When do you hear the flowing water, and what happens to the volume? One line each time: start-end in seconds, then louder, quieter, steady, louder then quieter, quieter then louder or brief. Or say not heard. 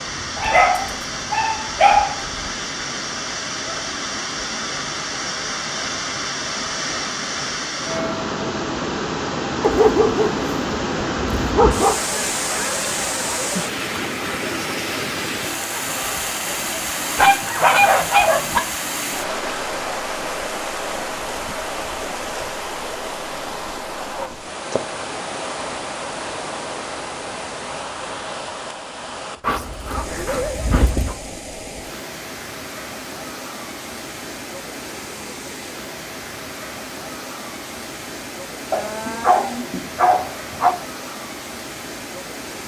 0.0-42.6 quieter.